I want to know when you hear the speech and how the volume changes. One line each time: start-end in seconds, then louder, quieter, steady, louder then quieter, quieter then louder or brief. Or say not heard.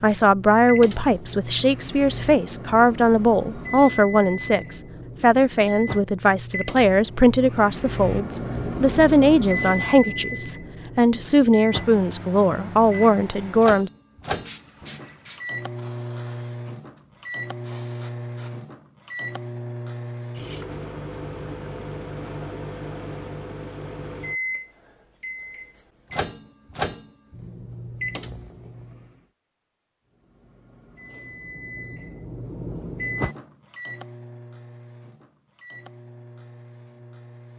0.0-13.9 steady.